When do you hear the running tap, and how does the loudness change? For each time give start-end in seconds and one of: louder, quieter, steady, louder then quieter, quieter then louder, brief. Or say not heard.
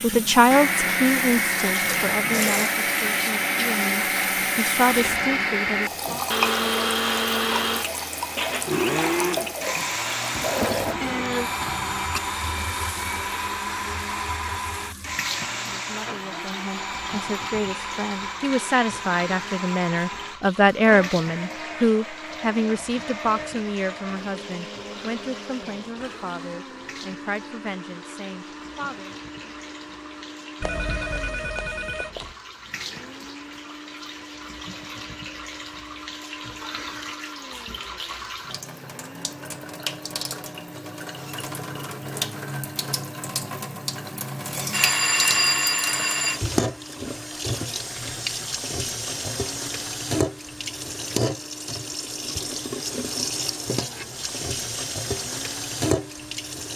0.0-56.7 quieter then louder.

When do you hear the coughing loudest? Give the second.
11 s.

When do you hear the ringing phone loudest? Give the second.
45 s.